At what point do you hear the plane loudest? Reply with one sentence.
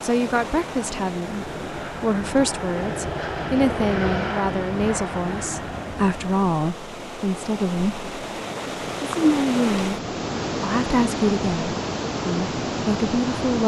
The volume of the plane peaks at 4 seconds.